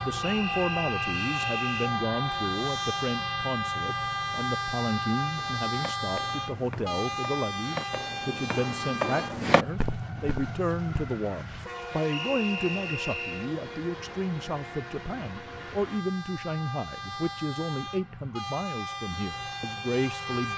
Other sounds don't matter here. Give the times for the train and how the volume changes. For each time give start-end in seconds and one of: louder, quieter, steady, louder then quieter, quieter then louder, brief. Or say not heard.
0.0-20.5 quieter.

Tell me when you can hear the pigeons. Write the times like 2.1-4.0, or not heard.
not heard.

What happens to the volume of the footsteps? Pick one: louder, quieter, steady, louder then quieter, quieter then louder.
louder then quieter.